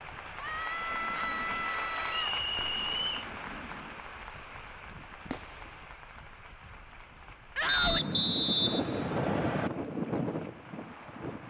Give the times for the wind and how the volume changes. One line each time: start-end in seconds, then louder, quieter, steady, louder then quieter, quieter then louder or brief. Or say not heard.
0.0-11.4 louder.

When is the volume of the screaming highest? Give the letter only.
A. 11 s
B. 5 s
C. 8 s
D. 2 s
C.